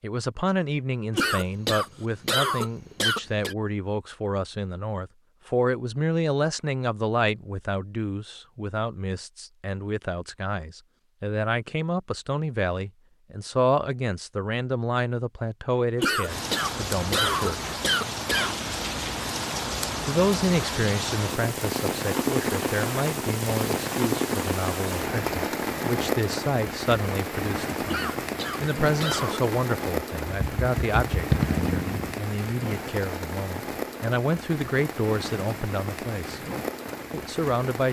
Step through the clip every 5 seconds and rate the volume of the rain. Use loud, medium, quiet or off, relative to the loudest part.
off, off, off, loud, loud, loud, medium, medium.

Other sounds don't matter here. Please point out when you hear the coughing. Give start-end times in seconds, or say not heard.
1.1-3.5, 15.9-18.6, 27.9-29.4.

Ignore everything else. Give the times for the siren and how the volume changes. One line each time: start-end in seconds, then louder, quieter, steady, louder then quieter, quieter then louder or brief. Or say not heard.
not heard.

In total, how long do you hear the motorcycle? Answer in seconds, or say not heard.
2 s.